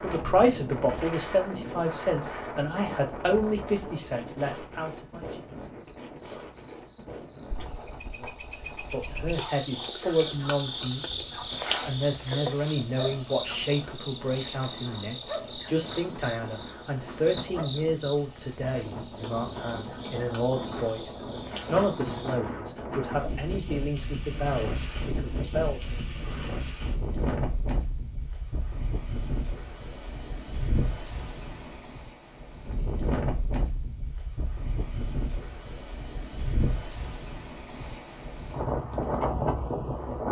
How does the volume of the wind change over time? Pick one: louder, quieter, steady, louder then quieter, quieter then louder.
quieter then louder.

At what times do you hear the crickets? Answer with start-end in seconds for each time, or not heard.
0.0-22.4.